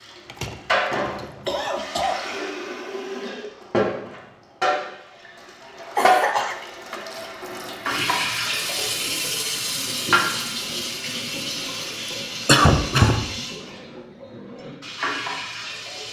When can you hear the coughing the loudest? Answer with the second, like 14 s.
13 s.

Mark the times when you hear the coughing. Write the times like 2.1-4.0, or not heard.
0.2-2.2, 6.0-6.6, 12.4-13.2.